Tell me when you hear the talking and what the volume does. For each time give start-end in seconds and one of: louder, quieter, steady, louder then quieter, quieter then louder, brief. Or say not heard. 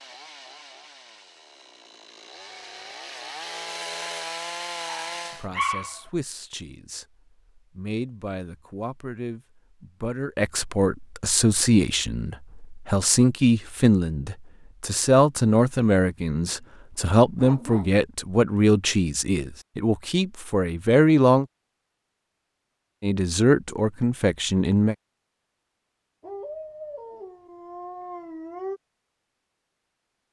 5.2-21.4 louder
23.0-24.9 brief.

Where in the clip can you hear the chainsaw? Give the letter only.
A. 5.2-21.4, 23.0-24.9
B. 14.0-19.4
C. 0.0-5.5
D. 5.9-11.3
C.